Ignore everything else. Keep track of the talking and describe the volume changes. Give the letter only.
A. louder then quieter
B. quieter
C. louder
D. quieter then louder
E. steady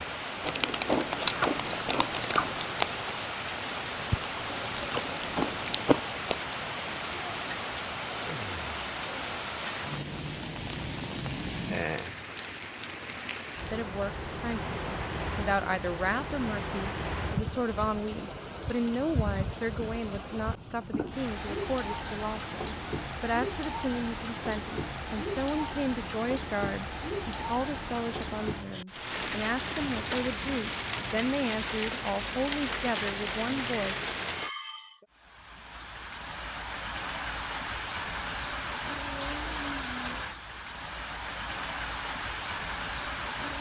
E.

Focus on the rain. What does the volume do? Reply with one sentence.
The volume of the rain stays about the same.